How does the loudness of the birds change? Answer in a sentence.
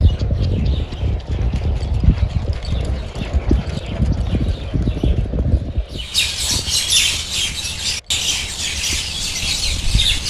The loudness of the birds goes up.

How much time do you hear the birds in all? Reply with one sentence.
The birds can be heard for 10 seconds in total.